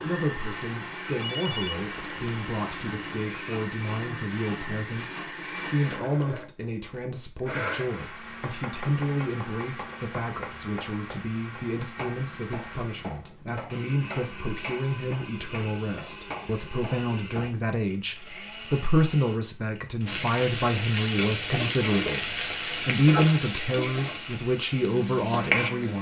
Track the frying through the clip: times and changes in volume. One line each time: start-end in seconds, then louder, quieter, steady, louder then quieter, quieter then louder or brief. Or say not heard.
20.1-25.9 quieter.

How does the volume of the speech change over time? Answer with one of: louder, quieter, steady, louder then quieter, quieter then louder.
louder.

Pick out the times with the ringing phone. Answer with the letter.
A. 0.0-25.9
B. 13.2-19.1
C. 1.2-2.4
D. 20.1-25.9
C.